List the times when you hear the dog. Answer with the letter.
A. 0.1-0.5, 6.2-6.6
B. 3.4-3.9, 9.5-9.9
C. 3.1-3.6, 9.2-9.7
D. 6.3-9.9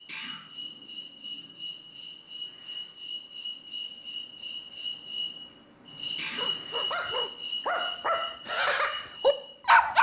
D.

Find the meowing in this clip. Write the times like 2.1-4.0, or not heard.
0.1-0.5, 6.2-6.6.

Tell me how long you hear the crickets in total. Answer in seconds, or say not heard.
10 s.